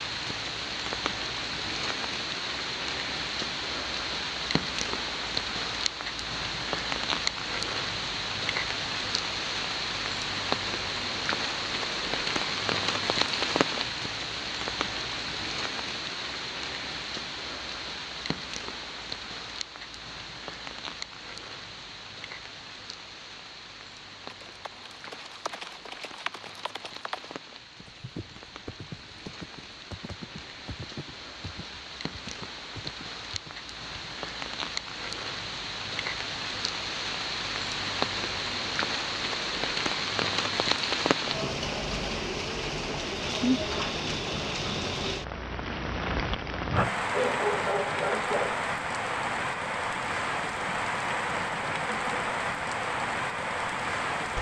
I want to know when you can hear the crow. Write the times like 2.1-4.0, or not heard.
not heard.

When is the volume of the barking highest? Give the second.
47 s.